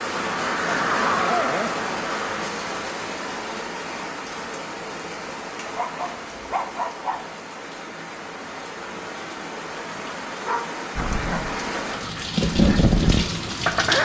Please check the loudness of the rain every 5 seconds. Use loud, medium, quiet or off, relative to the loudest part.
loud, medium, loud.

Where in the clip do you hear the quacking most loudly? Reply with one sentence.
The loudest moment of the quacking is at 13 seconds.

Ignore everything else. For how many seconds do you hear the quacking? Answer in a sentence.
You can hear the quacking for 5 seconds altogether.